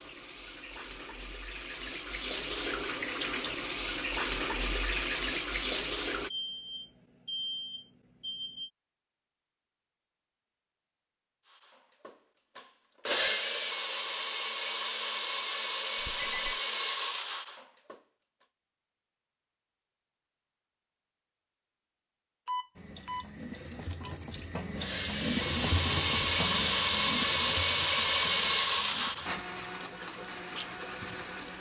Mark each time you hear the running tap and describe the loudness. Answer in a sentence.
The running tap can be heard from 0.0 to 6.3 s, getting louder; and from 22.8 to 31.5 s, getting louder then quieter.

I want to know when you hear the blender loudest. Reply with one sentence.
The volume of the blender peaks at 28 seconds.